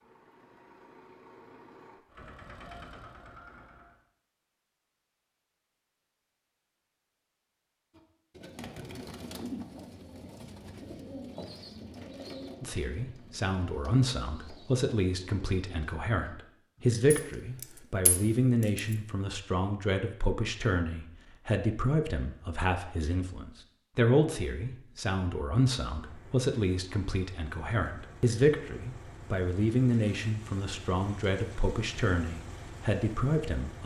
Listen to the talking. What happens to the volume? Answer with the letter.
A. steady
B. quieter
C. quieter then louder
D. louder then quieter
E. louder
A.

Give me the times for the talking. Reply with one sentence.
You can hear the talking from 12.6 to 33.8 s.